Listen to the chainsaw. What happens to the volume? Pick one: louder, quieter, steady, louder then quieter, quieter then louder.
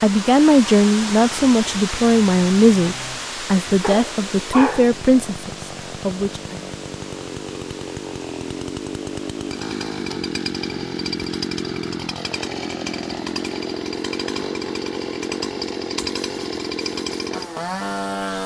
louder.